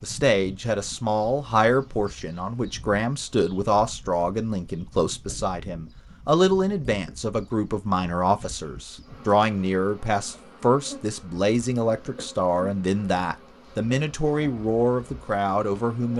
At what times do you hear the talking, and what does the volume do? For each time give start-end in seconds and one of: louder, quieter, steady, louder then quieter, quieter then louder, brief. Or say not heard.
0.0-16.1 steady.